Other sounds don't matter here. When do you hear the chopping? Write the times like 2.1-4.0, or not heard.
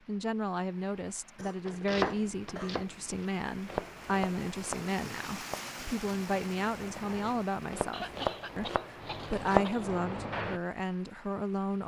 1.6-10.6.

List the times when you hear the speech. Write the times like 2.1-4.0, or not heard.
0.1-11.8.